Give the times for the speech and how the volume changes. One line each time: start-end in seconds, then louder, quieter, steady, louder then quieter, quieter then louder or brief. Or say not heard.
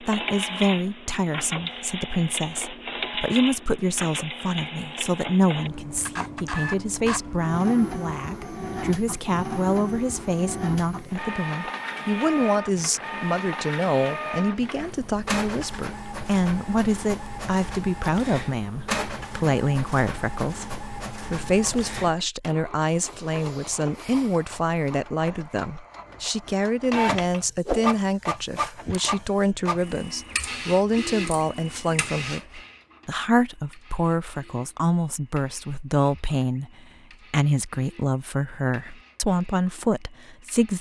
0.0-40.7 steady.